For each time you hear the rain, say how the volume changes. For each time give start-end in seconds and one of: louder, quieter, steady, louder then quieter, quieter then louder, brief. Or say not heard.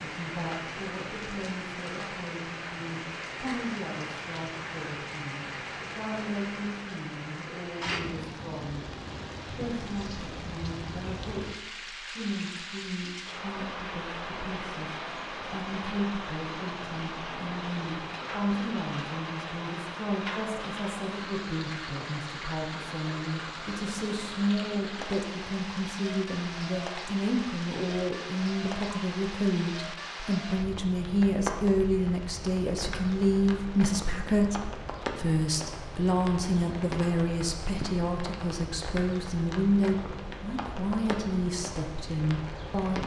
0.0-43.0 steady.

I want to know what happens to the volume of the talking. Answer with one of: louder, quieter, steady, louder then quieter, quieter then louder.
louder.